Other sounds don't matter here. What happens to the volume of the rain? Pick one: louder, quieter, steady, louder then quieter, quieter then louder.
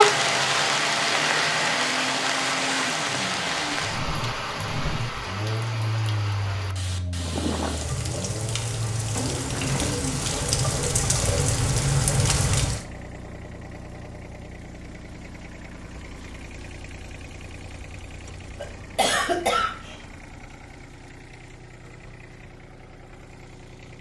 quieter then louder.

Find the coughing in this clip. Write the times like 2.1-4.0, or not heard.
18.6-19.9.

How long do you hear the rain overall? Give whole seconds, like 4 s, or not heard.
13 s.